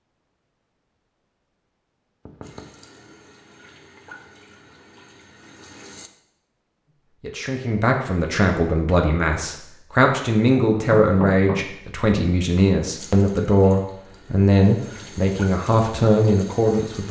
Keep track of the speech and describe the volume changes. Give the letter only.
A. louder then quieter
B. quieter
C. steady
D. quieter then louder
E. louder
C.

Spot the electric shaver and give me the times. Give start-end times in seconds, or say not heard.
not heard.